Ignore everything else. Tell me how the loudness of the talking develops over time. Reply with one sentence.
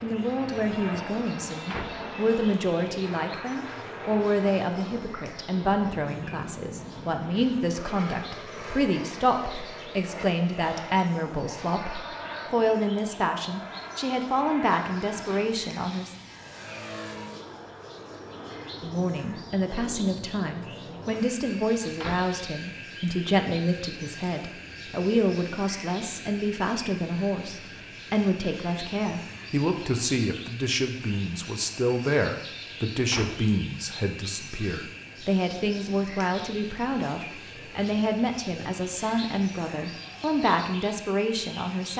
The loudness of the talking stays about the same.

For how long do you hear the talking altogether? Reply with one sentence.
You can hear the talking for 39 seconds altogether.